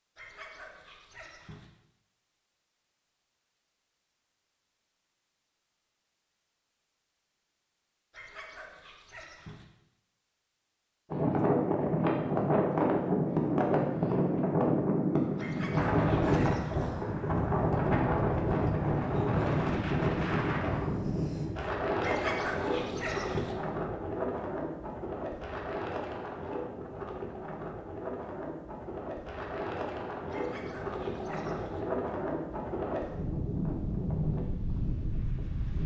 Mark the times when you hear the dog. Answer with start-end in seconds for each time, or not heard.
0.1-1.7, 8.1-9.7, 15.3-16.9, 22.0-23.6, 30.3-31.9.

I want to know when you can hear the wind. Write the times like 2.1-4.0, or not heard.
11.1-35.8.